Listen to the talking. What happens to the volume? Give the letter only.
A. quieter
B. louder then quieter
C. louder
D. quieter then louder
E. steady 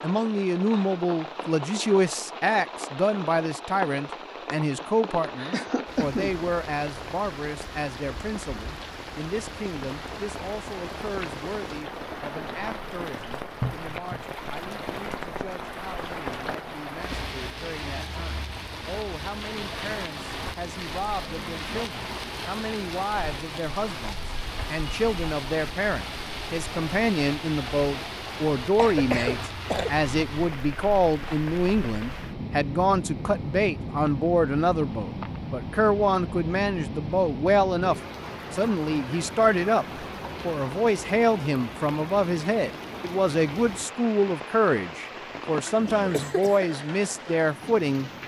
D.